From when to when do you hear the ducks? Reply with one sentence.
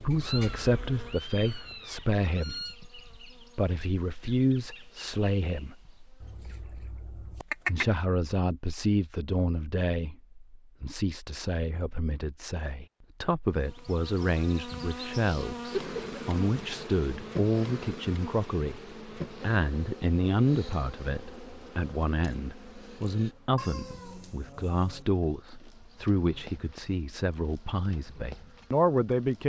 The ducks can be heard from 6.2 to 7.8 s.